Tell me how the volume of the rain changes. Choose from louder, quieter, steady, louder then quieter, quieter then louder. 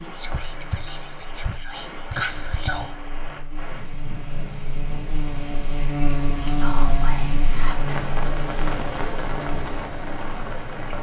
louder.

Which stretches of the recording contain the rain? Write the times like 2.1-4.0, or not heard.
0.0-10.9.